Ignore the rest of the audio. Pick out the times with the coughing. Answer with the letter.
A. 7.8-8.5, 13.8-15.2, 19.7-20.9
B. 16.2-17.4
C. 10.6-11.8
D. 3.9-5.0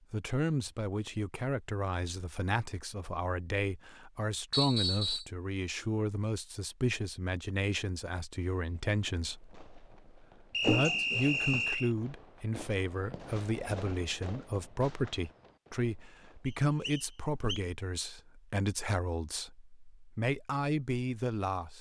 C.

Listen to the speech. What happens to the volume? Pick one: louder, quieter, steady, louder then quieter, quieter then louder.
steady.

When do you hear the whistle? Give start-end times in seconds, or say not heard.
4.5-5.2, 10.5-11.9, 16.4-17.6.